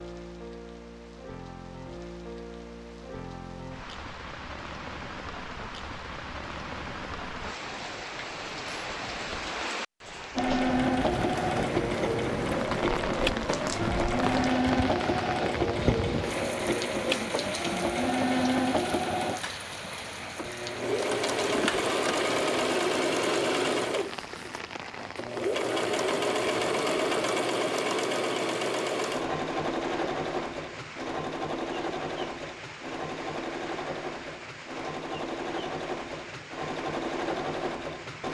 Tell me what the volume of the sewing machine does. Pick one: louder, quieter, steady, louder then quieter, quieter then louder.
quieter.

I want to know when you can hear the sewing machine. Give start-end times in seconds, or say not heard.
10.3-38.2.